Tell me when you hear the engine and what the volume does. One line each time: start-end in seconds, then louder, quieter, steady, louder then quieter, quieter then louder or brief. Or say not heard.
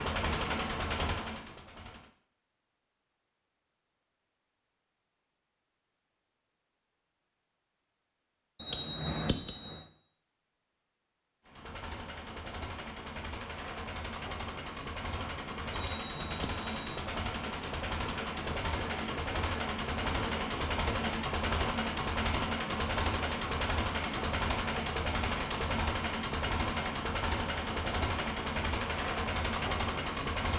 0.0-2.1 brief
11.4-30.5 louder.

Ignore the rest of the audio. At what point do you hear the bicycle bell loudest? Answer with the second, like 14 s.
9 s.